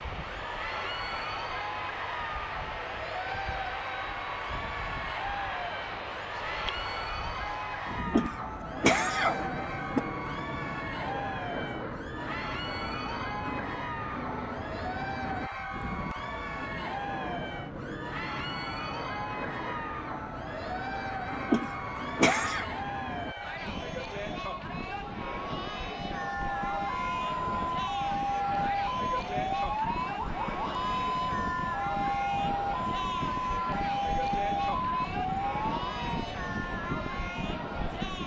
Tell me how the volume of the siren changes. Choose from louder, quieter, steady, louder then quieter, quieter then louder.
steady.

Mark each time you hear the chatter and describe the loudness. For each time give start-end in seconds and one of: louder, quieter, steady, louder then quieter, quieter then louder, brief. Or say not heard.
0.3-38.2 steady.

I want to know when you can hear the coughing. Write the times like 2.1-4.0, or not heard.
8.1-10.1, 21.5-22.6.